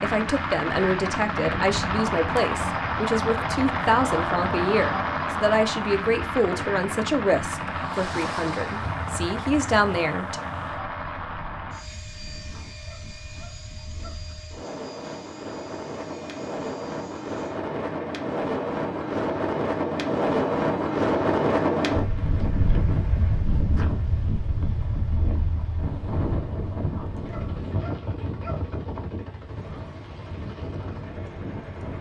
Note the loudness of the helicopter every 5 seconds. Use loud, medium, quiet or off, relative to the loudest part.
loud, loud, medium, quiet, quiet, quiet, quiet.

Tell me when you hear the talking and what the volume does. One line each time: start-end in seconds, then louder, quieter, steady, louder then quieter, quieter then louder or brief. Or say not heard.
0.0-10.4 steady.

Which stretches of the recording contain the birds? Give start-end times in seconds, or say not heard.
not heard.